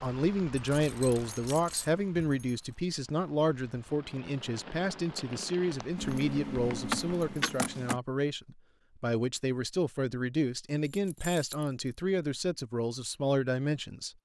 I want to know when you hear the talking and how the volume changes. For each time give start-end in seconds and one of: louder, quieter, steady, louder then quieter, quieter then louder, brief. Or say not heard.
0.0-14.1 steady.